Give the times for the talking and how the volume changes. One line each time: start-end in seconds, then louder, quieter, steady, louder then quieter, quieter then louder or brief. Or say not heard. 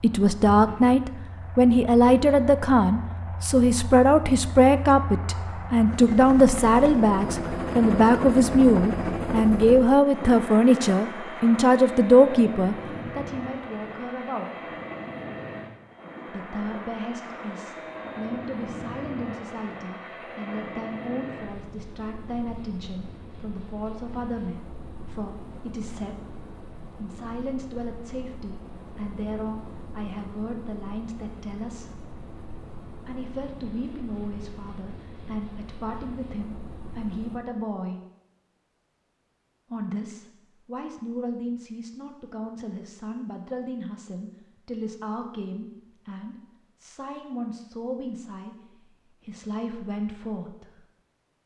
0.0-14.5 steady
16.2-32.0 steady
33.0-38.0 quieter then louder
39.7-50.9 steady.